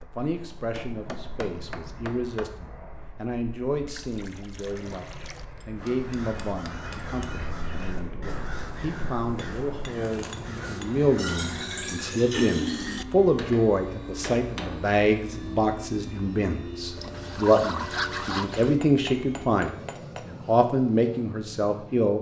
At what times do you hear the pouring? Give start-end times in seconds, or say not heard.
3.9-5.5, 11.2-13.1, 16.9-18.8.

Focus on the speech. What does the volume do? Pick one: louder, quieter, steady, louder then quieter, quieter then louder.
louder.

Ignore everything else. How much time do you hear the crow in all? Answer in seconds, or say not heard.
6 s.